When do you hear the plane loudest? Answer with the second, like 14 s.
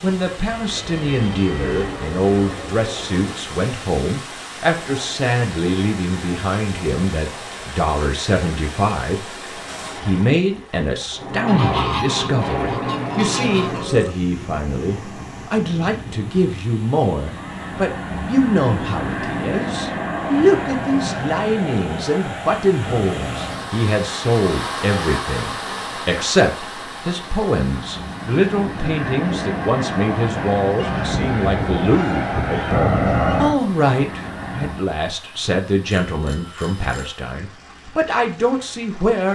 33 s.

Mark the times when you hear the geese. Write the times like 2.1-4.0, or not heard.
11.4-13.8, 30.8-33.5.